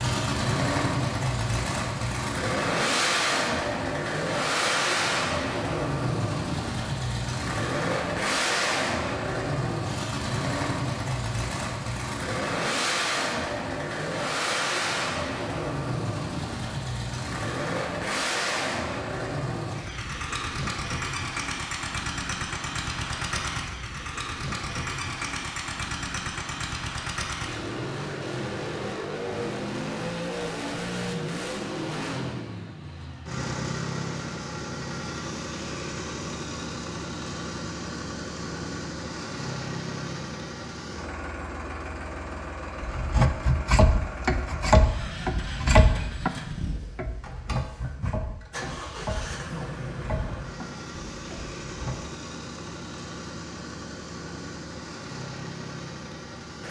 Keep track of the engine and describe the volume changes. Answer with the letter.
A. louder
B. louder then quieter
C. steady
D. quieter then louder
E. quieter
E.